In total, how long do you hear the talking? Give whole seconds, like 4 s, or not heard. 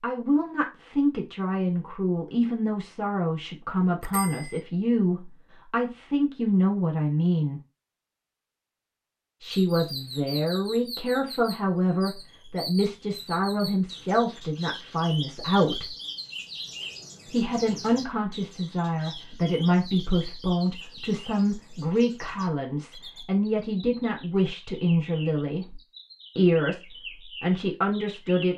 25 s.